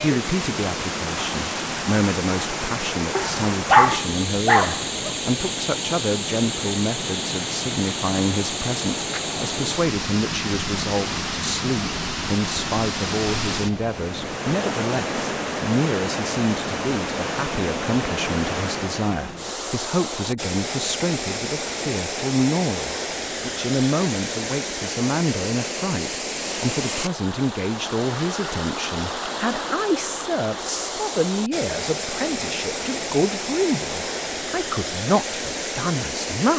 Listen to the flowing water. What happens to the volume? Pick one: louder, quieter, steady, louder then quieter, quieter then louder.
steady.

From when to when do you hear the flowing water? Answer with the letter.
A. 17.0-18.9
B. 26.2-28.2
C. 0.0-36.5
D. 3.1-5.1
C.